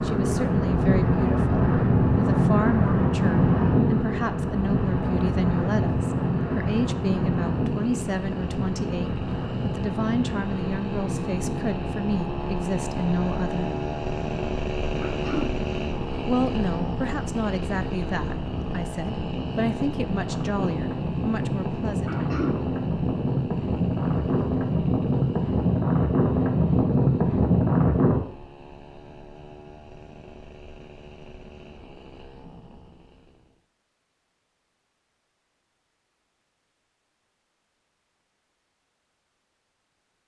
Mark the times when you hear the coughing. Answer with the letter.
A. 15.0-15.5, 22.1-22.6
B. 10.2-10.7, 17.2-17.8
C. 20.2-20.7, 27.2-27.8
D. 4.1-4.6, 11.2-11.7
A.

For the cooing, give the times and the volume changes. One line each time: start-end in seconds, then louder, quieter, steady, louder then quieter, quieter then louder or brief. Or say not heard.
not heard.